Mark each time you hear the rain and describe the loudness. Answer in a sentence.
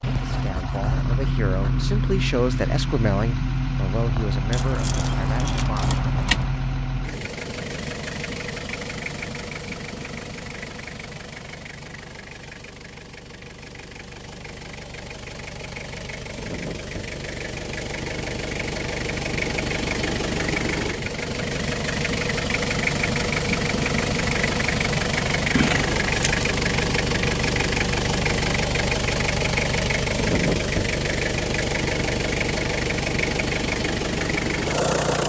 You can't hear the rain here.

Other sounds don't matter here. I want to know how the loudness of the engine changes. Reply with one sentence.
The volume of the engine goes down, then up.